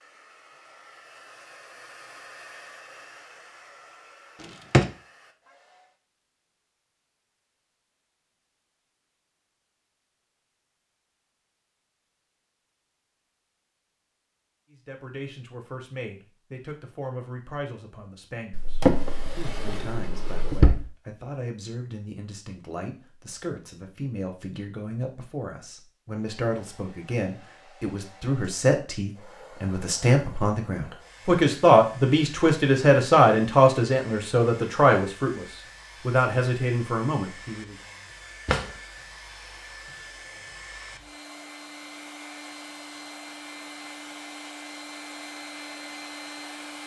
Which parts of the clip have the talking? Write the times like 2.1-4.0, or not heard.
14.7-37.8.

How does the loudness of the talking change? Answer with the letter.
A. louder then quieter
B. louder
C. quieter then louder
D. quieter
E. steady
B.